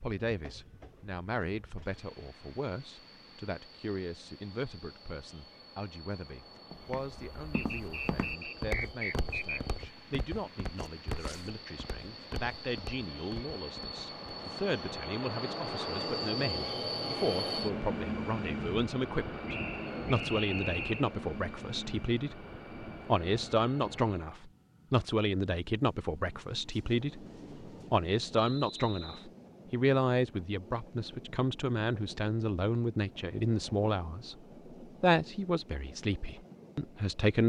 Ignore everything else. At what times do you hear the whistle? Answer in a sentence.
You can hear the whistle from 7.5 to 9.8 s, from 19.4 to 21.1 s and from 28.4 to 29.3 s.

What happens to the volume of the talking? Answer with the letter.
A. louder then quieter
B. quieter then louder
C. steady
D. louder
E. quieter
D.